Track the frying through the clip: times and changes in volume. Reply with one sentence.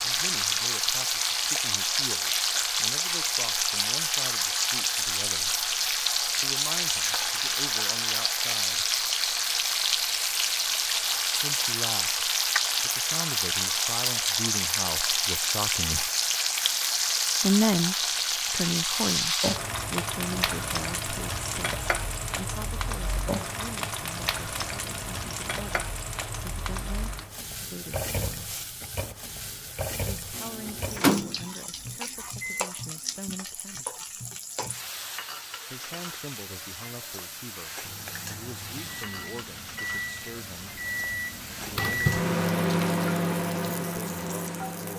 The frying can be heard from 0.0 to 44.9 s, getting quieter.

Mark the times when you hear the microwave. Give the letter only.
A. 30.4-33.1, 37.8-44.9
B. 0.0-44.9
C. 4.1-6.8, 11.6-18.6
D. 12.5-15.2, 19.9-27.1
A.